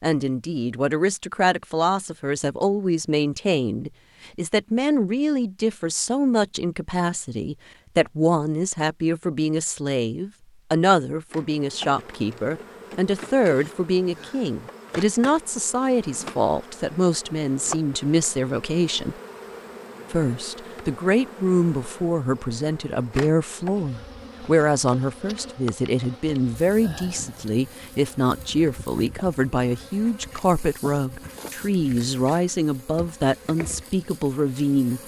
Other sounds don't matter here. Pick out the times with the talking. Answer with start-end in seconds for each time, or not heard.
0.0-19.1, 20.1-35.0.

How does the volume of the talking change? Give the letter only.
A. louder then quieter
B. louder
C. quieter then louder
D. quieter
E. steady
E.